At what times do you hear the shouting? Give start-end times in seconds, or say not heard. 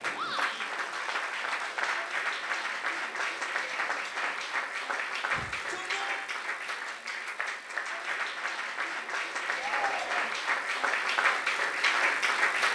0.1-0.7, 5.3-6.3, 9.6-10.3.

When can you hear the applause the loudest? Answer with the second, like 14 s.
12 s.